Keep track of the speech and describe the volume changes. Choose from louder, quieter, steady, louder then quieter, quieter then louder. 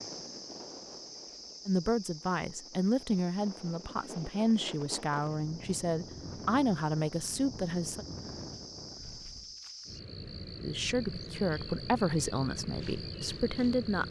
steady.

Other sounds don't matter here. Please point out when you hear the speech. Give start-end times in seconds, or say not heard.
1.6-8.1, 10.6-14.0.